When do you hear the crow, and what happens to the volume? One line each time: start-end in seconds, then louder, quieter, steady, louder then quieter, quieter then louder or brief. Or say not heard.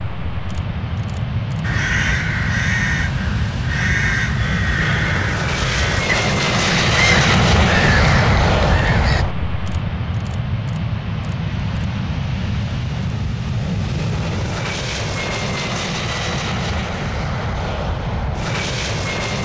1.6-9.2 steady.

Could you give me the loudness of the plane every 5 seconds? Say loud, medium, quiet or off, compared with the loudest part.
medium, loud, medium, medium.